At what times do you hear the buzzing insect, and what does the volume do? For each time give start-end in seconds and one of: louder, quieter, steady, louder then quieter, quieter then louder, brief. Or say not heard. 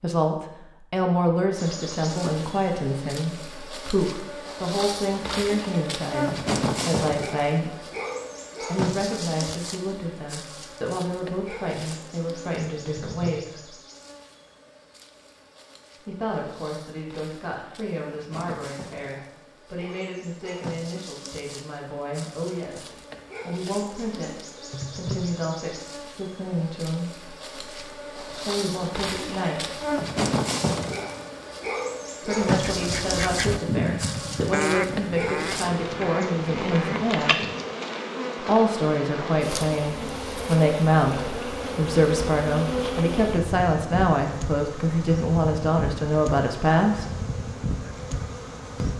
1.6-48.9 quieter then louder.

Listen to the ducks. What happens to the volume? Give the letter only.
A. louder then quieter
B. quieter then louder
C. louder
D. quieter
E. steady
D.